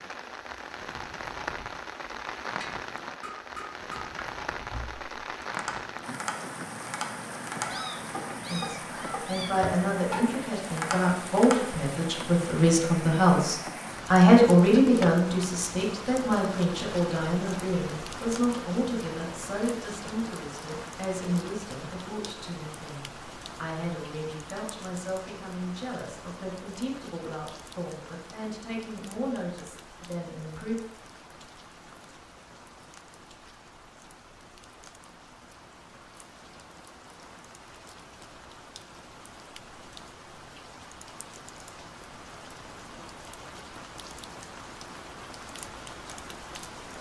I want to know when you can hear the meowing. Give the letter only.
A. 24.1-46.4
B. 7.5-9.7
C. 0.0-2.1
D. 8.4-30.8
B.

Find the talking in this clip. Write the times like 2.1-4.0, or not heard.
8.4-30.8.